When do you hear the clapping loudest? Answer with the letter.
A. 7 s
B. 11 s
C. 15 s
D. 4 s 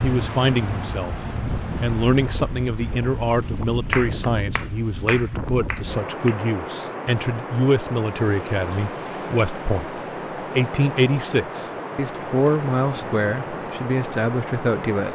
D.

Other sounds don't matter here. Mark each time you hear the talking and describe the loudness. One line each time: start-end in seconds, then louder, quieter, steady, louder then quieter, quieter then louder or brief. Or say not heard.
0.0-1.1 brief
1.8-15.0 steady.